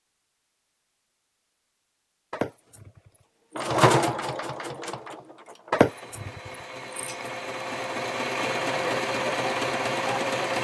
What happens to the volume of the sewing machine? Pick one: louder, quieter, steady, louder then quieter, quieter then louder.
quieter then louder.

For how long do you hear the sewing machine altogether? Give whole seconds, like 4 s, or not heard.
7 s.